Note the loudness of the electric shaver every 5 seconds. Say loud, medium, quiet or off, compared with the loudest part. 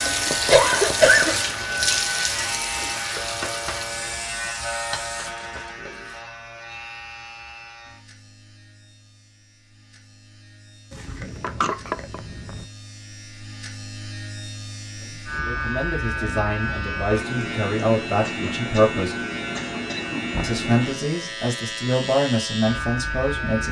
loud, medium, quiet, loud, loud.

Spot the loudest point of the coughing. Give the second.
1 s.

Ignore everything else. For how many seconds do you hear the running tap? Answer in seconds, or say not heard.
6 s.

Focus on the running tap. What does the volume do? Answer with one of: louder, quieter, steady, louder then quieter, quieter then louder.
quieter.